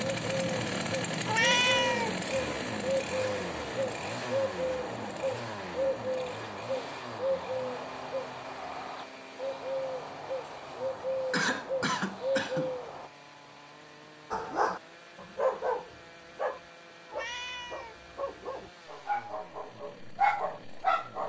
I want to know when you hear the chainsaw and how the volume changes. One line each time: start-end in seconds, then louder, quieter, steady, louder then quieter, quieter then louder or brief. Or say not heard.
0.0-21.2 quieter.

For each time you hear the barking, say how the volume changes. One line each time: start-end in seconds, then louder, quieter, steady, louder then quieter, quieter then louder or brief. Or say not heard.
14.3-21.2 quieter then louder.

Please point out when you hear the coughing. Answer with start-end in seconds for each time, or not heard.
11.3-12.8.